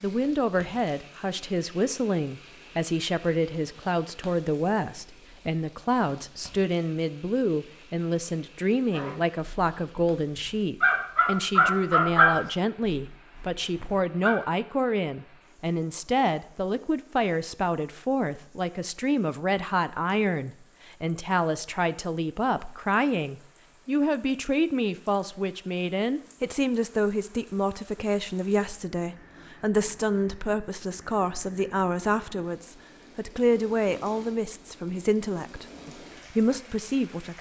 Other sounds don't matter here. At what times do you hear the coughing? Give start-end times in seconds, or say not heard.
not heard.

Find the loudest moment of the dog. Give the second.
12 s.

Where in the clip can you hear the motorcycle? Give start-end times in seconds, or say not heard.
not heard.